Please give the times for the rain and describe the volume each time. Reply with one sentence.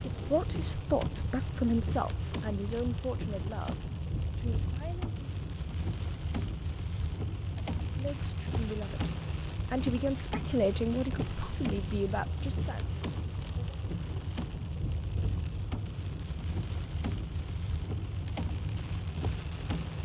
You can hear the rain from 0.0 to 20.0 s, at a steady volume.